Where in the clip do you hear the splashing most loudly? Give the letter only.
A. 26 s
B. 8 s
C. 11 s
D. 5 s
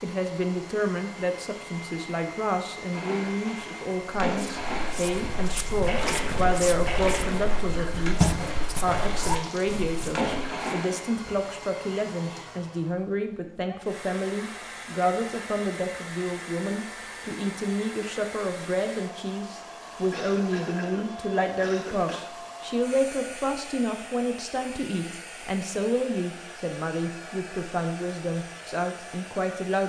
B.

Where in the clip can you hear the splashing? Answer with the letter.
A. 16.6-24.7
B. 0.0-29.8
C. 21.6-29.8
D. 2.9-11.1
D.